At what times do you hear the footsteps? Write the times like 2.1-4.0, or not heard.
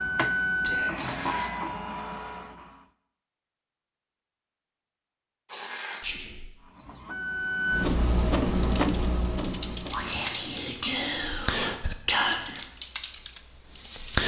not heard.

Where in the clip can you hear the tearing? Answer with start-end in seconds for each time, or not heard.
0.9-1.5, 5.5-6.0, 9.9-10.3.